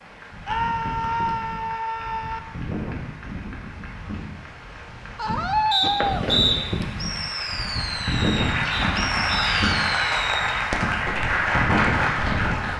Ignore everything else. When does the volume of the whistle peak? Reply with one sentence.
The loudest moment of the whistle is at 6 seconds.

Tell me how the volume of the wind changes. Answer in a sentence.
The loudness of the wind goes up.